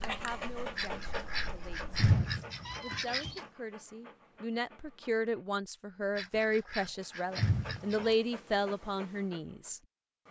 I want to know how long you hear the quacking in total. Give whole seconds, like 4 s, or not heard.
5 s.